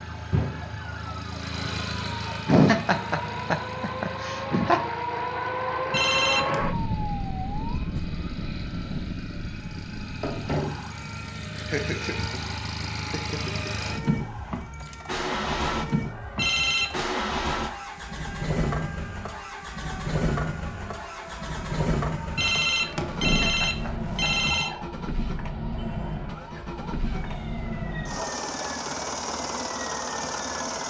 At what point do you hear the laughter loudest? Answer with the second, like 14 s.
3 s.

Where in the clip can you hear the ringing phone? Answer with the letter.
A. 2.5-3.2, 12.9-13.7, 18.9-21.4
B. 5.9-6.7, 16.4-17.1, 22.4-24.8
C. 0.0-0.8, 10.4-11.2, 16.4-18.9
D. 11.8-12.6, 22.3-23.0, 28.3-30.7
B.